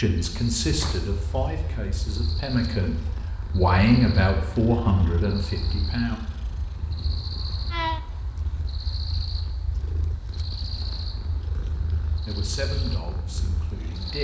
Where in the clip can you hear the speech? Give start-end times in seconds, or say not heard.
0.0-6.2, 12.1-14.1.